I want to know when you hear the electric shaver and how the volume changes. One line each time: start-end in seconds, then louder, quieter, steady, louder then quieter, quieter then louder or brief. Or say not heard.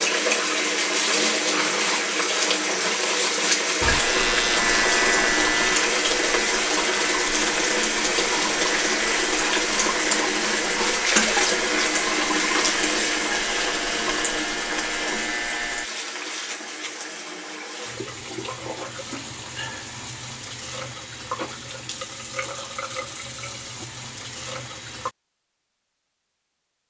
3.8-15.9 quieter.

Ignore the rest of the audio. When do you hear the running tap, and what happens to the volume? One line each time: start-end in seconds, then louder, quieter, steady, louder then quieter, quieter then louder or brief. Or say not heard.
0.0-25.1 quieter.